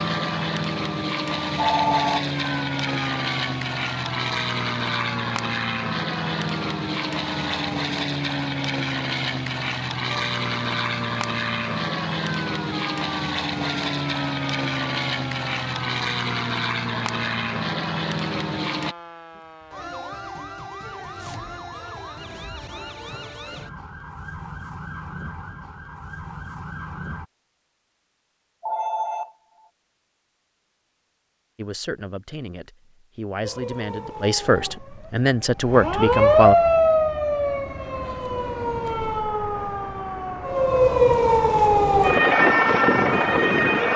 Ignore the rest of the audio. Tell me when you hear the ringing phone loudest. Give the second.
2 s.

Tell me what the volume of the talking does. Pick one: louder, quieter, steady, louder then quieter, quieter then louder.
louder.